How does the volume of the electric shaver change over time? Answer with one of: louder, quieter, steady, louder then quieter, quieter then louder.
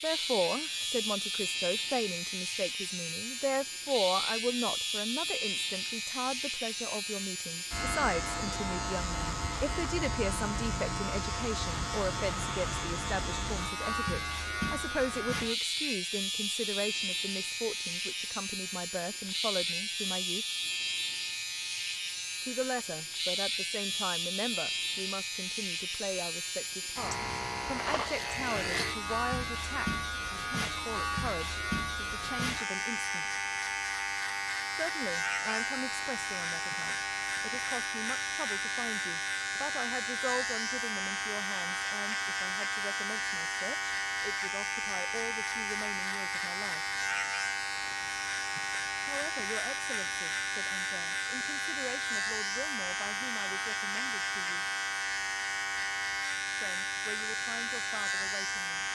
steady.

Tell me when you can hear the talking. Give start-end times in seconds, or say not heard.
0.0-20.4, 22.4-33.4, 34.7-46.9, 49.0-54.6, 56.6-58.9.